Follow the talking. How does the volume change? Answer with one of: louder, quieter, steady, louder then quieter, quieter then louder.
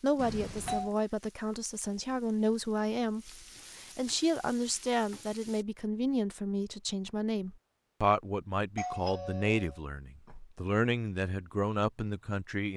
steady.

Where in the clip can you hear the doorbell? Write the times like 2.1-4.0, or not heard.
0.1-0.9, 8.8-10.6.